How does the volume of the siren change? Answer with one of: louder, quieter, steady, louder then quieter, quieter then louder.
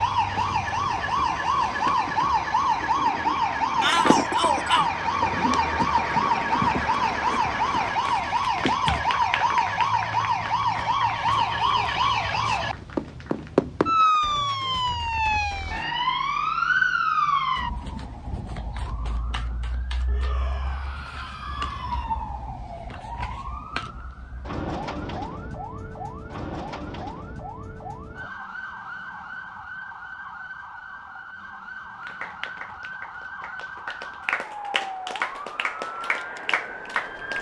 quieter.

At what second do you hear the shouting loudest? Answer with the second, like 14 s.
4 s.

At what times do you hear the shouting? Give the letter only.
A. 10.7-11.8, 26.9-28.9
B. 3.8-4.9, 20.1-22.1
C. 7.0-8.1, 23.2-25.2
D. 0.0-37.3
B.